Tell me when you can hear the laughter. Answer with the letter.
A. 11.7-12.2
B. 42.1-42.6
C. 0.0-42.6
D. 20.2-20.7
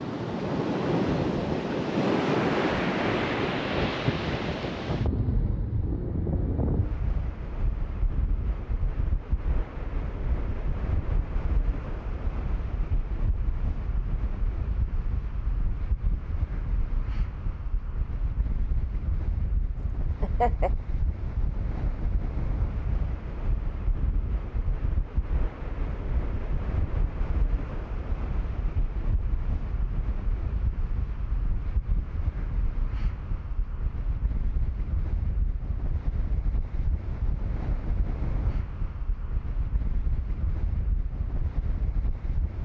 D.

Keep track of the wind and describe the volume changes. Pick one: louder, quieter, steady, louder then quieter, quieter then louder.
quieter.